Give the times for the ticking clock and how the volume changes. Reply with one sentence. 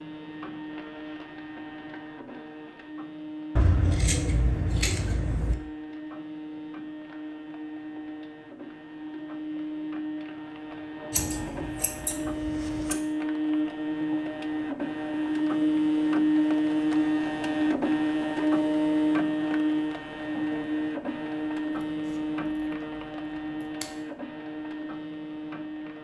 You can't hear the ticking clock here.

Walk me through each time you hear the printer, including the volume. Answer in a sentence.
The printer can be heard from 0.0 to 25.9 s, getting louder then quieter.